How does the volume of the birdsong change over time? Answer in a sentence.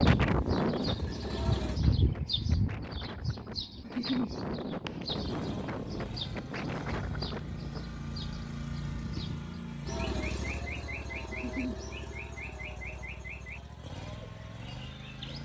The loudness of the birdsong goes down.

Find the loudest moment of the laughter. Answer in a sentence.
The loudest moment of the laughter is at 4 seconds.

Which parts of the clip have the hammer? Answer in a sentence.
The hammer can't be heard in this clip.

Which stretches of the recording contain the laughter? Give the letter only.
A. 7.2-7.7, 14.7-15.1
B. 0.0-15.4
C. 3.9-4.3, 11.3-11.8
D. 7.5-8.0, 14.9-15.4
C.